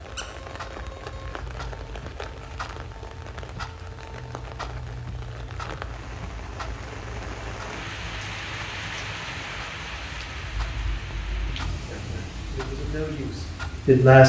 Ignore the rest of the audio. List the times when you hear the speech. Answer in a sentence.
You can hear the speech from 11.8 to 14.2 s.